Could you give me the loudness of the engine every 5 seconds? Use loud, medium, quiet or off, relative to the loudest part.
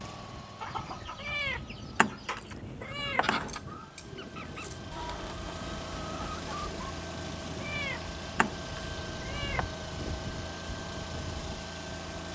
medium, loud, loud.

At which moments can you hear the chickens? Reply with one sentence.
The chickens can be heard from 0.6 to 6.8 s.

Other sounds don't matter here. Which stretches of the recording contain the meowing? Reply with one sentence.
You can hear the meowing from 1.2 to 3.5 s and from 7.6 to 9.7 s.